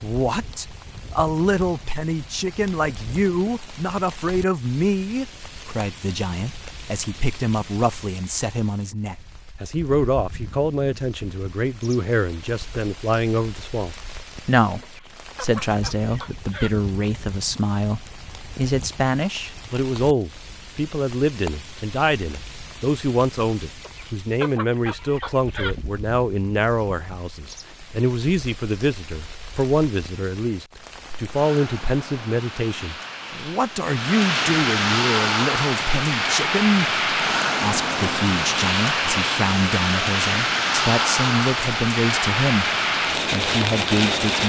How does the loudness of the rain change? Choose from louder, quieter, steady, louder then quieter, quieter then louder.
louder.